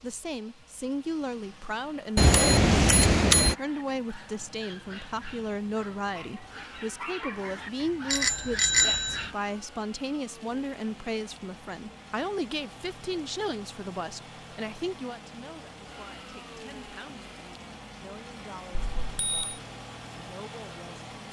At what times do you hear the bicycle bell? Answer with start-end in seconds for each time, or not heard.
2.1-3.5, 8.1-9.2, 18.7-19.6.